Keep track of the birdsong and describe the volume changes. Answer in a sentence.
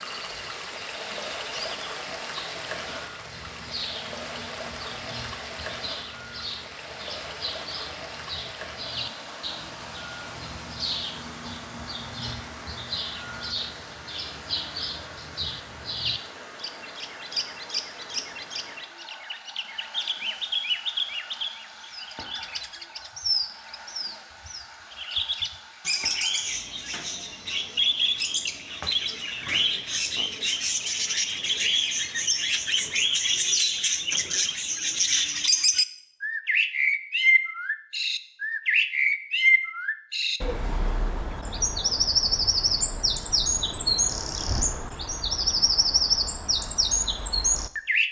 The loudness of the birdsong goes up.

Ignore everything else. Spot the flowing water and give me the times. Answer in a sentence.
You can hear the flowing water from 0.0 to 33.5 s.